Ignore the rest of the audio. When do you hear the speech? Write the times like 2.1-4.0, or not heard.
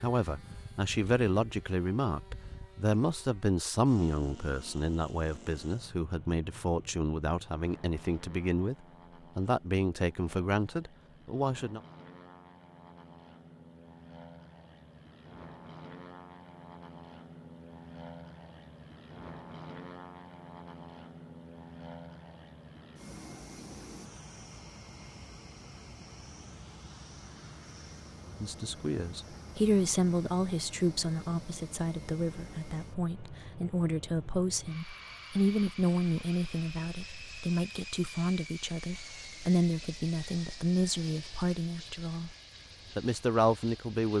0.0-8.8, 9.3-11.8, 28.2-42.4, 43.0-44.1.